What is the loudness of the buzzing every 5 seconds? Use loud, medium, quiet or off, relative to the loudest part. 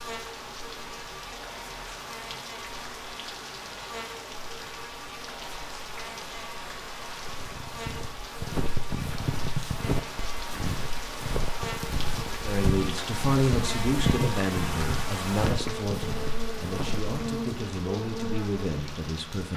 medium, medium, loud, loud.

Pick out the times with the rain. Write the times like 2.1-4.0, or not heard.
0.0-19.5.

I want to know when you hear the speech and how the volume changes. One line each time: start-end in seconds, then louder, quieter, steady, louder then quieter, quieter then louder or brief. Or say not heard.
12.4-19.5 quieter.